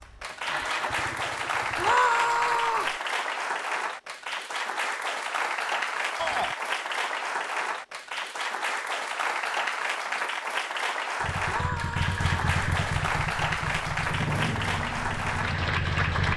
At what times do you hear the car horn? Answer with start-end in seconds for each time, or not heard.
not heard.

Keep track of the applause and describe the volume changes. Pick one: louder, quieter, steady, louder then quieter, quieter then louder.
steady.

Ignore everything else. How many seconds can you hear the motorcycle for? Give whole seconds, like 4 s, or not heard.
7 s.